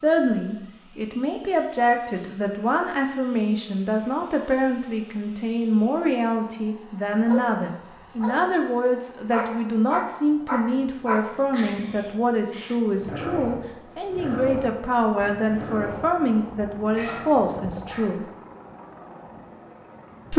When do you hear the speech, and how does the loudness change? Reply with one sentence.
The speech can be heard from 0.0 to 18.2 s, at a steady volume.